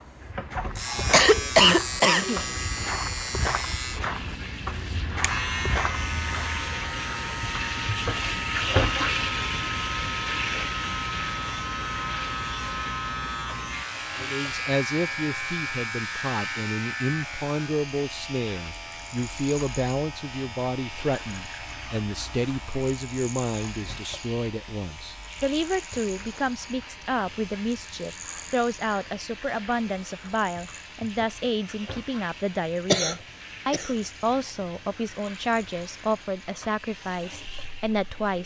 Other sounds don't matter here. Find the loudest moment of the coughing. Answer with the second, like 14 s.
2 s.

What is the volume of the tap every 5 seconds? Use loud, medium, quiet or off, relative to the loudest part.
medium, loud, medium, quiet, quiet, quiet, quiet, quiet.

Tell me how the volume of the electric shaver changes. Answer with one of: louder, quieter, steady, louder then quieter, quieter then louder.
quieter.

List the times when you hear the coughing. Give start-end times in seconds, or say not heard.
0.8-2.5, 32.9-33.9.